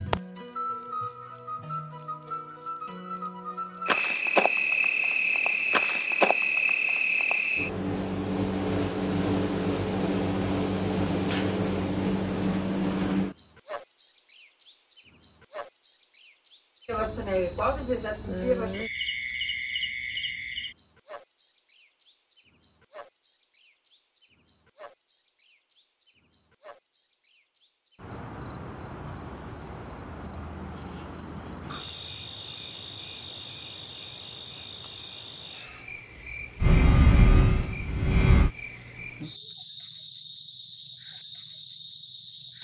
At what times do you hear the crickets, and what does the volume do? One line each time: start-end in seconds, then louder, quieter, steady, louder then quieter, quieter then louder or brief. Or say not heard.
0.0-42.5 quieter.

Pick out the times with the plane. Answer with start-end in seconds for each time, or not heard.
36.6-38.5.